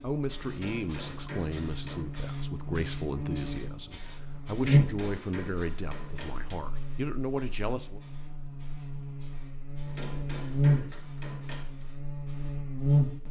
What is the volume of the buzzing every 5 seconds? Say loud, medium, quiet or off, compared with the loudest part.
loud, quiet, loud.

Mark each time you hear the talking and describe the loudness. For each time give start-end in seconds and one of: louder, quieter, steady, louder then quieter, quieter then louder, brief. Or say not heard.
0.0-8.0 steady.